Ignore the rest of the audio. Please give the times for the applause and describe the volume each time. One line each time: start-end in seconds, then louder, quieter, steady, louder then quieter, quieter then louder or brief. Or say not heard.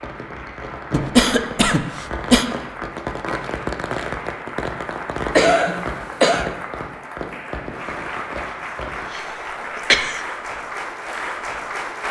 0.0-12.0 louder.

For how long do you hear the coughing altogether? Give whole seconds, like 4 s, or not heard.
4 s.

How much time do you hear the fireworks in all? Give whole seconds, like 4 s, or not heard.
9 s.